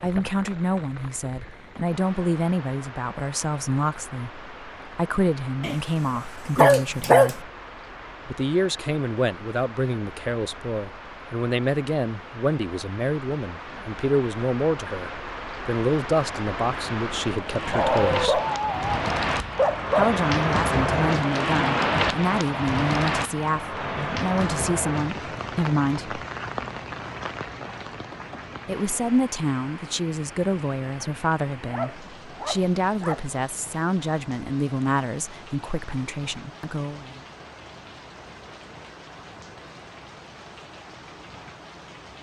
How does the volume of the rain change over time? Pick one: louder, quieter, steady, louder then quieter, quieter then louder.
louder then quieter.